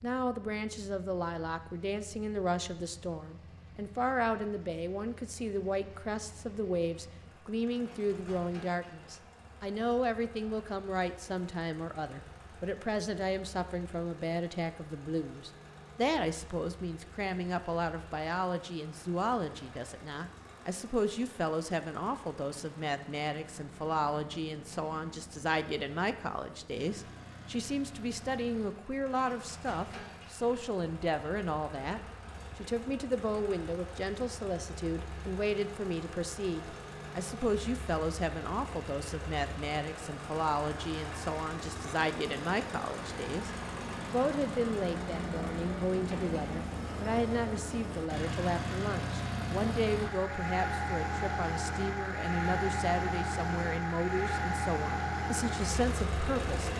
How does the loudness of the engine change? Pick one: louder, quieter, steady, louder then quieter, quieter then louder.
louder.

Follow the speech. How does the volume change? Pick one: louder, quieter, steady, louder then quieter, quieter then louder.
steady.